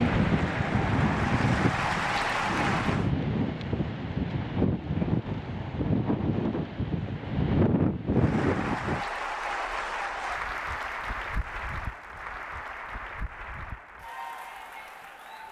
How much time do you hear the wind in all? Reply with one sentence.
You can hear the wind for 9 seconds altogether.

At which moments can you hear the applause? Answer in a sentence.
The applause can be heard from 0.0 to 3.1 s and from 8.1 to 15.4 s.